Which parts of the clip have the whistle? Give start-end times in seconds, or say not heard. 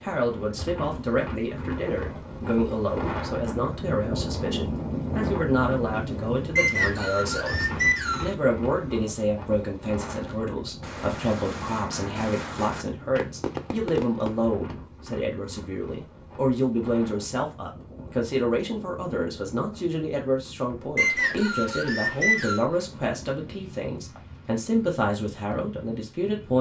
6.5-8.3, 20.9-22.6.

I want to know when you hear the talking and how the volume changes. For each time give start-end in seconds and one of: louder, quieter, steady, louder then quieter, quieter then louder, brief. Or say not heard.
0.0-26.5 steady.